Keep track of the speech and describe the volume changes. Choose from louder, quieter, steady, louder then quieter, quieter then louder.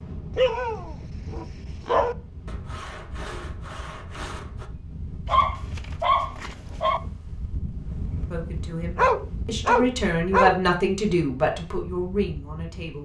louder then quieter.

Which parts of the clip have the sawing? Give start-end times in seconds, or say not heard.
2.5-4.7.